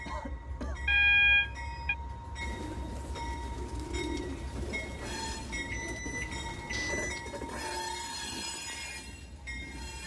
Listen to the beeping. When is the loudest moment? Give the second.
1 s.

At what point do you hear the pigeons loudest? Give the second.
4 s.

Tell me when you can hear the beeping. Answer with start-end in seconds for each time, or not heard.
0.8-1.9, 5.7-7.2.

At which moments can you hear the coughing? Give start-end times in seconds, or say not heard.
0.1-0.8, 6.7-7.4.